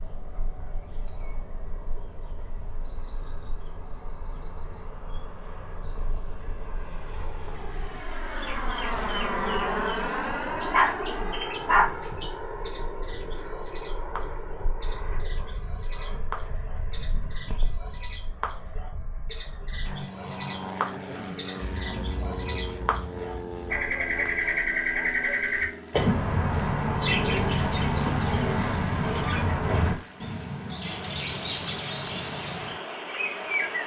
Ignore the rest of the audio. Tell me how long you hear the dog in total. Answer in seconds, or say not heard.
4 s.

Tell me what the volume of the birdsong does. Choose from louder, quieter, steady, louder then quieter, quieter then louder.
louder.